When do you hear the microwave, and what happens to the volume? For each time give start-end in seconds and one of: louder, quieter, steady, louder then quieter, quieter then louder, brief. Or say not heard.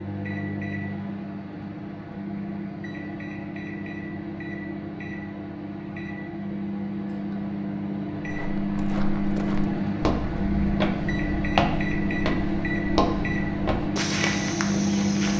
0.0-15.3 louder.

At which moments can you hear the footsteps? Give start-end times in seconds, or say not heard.
8.2-15.3.